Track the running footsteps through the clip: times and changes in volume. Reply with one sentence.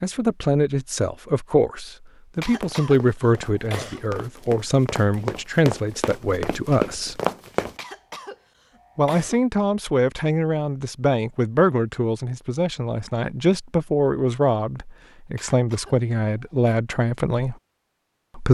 The running footsteps can be heard from 2.5 to 7.8 s, getting louder.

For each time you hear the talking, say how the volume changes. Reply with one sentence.
The talking can be heard from 0.0 to 7.2 s, at a steady volume; and from 8.9 to 17.6 s, at a steady volume.